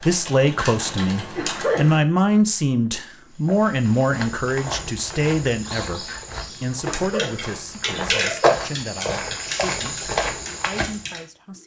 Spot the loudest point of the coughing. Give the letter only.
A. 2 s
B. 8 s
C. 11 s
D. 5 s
A.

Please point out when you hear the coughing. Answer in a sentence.
You can hear the coughing from 0.6 to 2.0 s and from 6.0 to 8.6 s.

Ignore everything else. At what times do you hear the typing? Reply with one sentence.
You can hear the typing from 0.0 to 2.0 s and from 6.9 to 11.6 s.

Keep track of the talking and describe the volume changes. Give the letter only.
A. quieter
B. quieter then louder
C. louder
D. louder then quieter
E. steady
A.